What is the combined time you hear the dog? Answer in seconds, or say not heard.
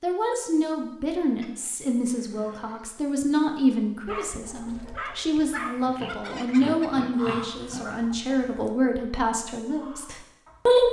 2 s.